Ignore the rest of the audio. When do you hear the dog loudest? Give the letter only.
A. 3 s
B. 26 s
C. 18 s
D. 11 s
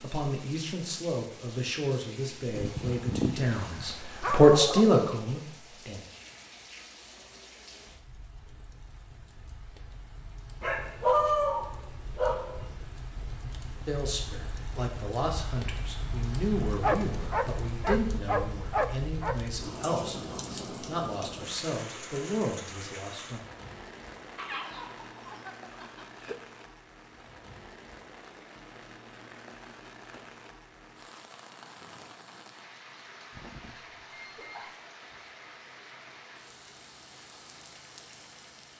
D.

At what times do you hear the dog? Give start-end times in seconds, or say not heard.
2.5-4.9, 10.6-12.7, 16.8-19.4, 24.4-26.4, 33.3-34.8.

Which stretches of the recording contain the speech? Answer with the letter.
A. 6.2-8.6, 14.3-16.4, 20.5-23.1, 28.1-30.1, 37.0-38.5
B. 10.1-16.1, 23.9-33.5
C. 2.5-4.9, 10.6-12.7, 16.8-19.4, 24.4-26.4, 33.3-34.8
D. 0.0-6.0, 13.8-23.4
D.